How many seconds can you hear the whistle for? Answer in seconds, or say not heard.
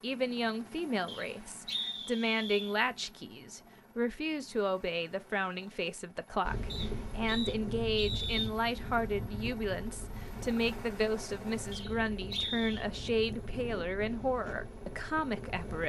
5 s.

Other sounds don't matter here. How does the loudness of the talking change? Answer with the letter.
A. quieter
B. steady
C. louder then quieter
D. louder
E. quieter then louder
B.